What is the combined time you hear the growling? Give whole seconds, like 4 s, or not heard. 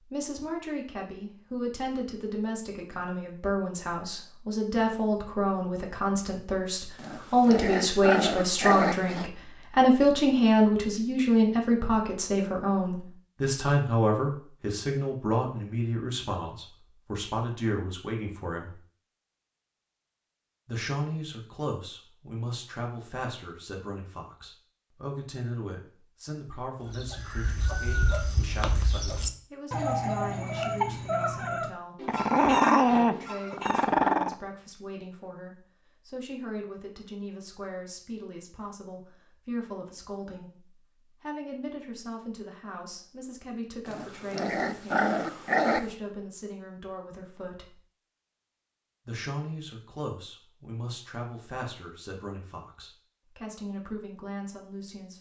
7 s.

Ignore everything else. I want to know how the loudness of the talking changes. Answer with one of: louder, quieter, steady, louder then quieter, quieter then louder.
quieter.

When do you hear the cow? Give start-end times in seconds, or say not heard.
not heard.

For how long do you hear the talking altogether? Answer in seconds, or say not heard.
52 s.